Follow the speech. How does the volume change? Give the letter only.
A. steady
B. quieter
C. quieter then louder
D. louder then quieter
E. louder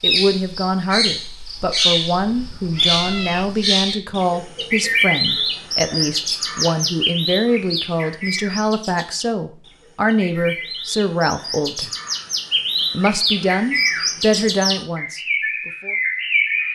A.